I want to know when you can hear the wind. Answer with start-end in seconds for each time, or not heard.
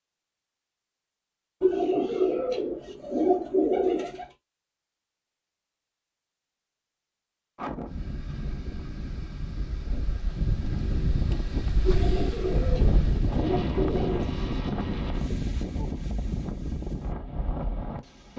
7.5-18.3.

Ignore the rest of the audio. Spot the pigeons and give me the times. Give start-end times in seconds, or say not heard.
1.6-4.2, 11.8-14.3.